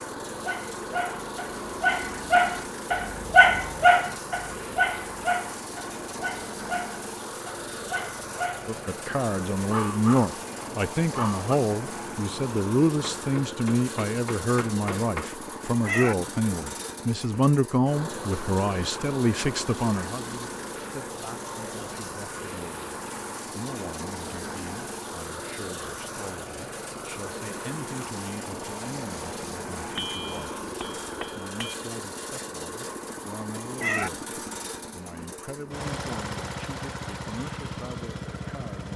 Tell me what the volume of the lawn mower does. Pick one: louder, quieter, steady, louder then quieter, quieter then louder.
steady.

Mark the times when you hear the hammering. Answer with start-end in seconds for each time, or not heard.
13.0-15.3, 29.9-31.8.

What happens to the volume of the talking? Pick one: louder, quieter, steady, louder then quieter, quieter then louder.
quieter.